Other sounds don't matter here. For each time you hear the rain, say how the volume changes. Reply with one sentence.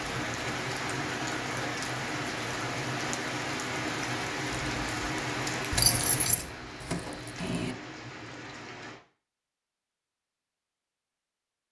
You can hear the rain from 0.0 to 9.0 s, getting quieter.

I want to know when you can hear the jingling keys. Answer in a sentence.
The jingling keys can be heard from 5.7 to 7.8 s.